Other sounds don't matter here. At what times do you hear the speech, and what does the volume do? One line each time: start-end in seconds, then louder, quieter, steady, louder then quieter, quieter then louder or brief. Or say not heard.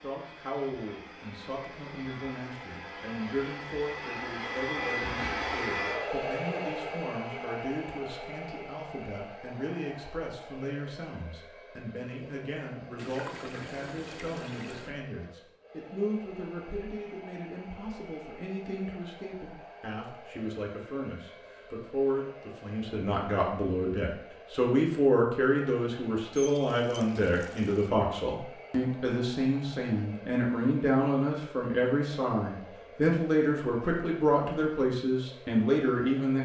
0.0-36.4 louder.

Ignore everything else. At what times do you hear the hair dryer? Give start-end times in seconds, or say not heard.
0.0-36.4.